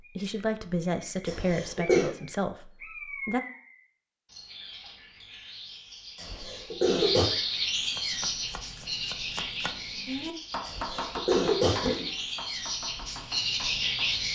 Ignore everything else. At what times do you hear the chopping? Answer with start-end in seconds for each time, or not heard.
7.9-14.2.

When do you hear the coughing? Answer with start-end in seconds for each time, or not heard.
1.2-2.1, 6.2-7.3, 10.7-12.1.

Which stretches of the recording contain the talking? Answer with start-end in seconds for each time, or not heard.
0.0-3.4.